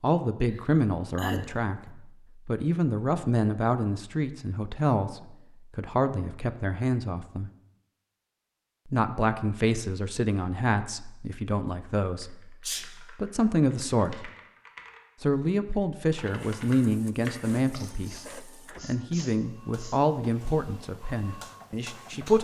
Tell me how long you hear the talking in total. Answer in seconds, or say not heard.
20 s.